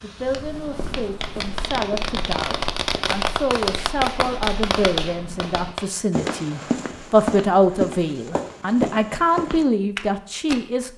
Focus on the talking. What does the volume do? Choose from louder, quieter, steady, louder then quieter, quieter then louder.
louder.